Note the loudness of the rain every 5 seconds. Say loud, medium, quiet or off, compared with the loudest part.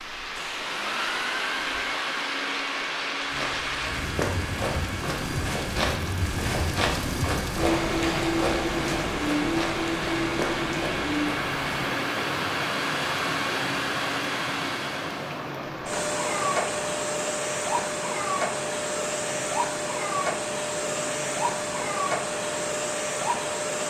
medium, loud, loud, medium, medium.